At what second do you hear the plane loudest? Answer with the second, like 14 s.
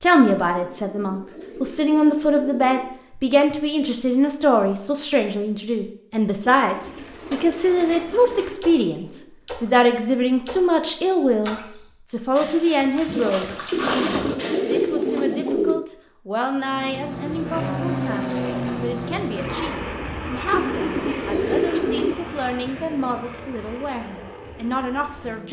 18 s.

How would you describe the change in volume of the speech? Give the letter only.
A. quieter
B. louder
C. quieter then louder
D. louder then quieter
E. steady
A.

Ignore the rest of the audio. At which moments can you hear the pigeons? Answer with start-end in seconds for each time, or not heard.
0.6-3.0, 6.7-9.3, 13.7-15.8, 20.5-22.1.